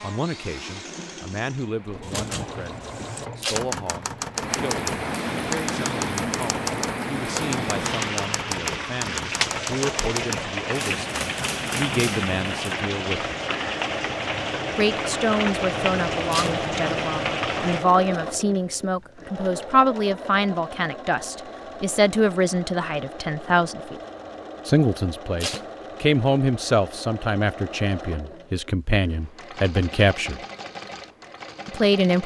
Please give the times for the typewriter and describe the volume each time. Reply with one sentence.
The typewriter can be heard from 2.0 to 12.8 s, at a steady volume.